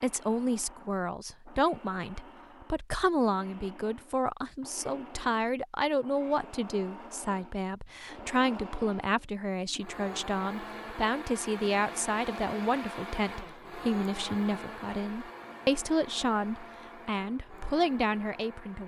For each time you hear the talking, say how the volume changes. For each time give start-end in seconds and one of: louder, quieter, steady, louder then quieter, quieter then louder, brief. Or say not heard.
0.0-18.8 steady.